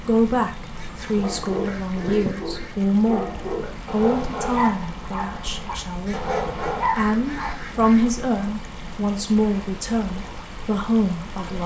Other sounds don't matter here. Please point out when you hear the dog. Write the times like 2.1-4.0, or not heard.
1.2-7.5.